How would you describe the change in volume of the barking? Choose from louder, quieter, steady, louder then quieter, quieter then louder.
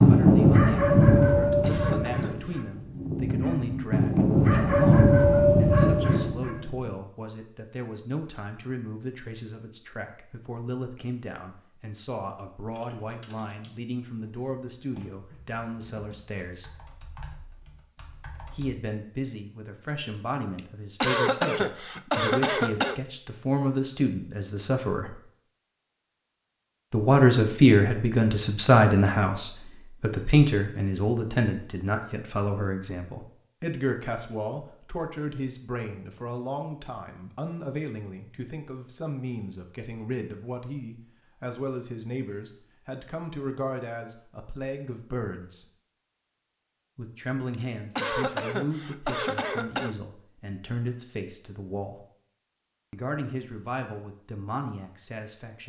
quieter then louder.